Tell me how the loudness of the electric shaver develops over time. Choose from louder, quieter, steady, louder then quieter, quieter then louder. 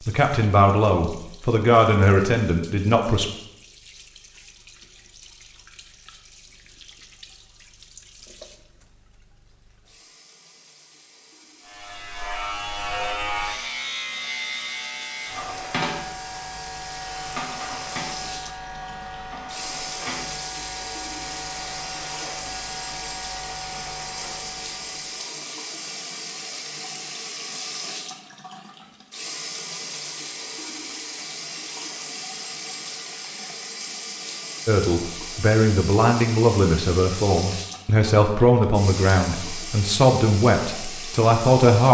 quieter.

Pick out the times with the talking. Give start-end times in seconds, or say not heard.
0.1-3.2, 34.6-41.8.